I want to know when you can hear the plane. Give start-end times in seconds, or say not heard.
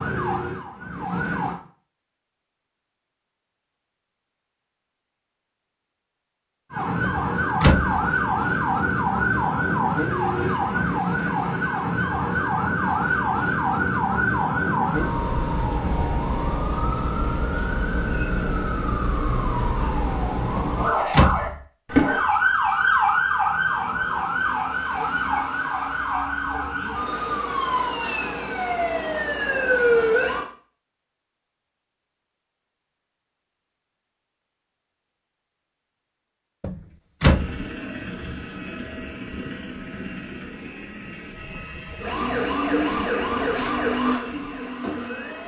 37.2-45.4.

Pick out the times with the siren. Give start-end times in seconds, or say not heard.
0.0-1.6, 6.7-30.4, 42.0-45.4.